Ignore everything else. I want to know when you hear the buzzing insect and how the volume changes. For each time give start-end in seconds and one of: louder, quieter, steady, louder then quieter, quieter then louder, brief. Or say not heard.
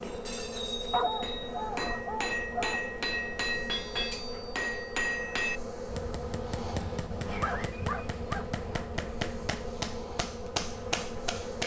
0.0-11.6 steady.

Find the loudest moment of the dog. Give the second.
1 s.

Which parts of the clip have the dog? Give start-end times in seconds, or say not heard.
0.9-2.9, 7.3-8.8.